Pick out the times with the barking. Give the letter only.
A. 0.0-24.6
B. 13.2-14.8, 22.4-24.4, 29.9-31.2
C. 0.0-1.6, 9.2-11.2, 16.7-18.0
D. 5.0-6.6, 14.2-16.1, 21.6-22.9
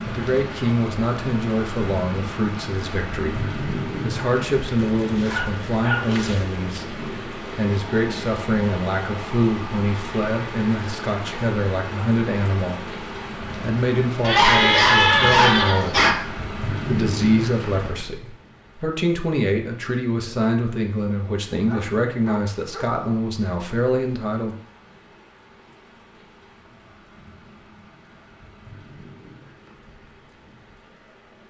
D.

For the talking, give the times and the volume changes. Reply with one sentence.
You can hear the talking from 0.0 to 24.6 s, at a steady volume.